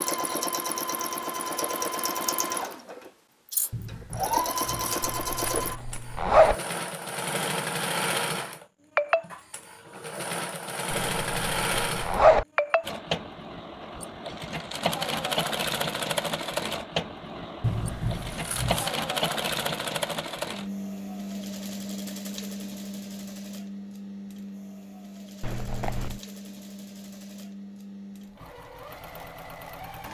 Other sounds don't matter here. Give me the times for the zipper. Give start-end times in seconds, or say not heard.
5.0-6.5, 11.1-12.4, 25.4-26.2.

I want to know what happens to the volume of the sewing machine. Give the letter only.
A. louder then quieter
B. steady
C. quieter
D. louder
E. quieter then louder
C.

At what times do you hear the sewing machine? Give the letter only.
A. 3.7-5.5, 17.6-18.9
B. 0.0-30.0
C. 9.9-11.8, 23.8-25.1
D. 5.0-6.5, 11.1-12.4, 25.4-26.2
B.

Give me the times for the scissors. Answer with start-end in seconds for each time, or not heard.
3.7-5.5, 17.6-18.9.